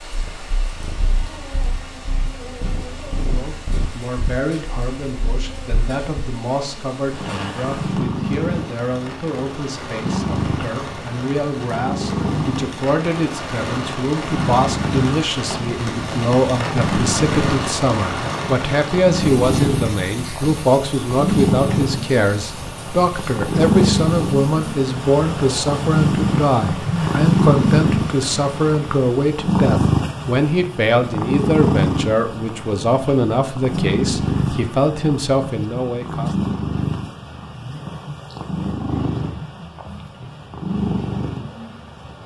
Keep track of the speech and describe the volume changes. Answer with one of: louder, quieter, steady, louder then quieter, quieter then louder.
louder.